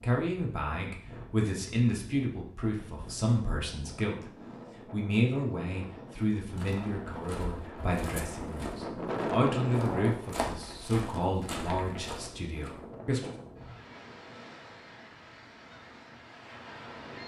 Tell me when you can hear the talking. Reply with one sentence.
You can hear the talking from 0.0 to 13.3 s.